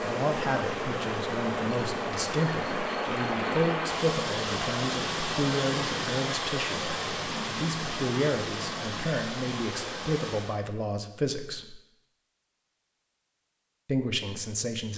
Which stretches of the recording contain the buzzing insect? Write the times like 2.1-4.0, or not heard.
0.0-4.6.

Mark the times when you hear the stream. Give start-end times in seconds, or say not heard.
0.0-10.6.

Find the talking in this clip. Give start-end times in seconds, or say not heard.
0.0-11.8, 13.8-14.9.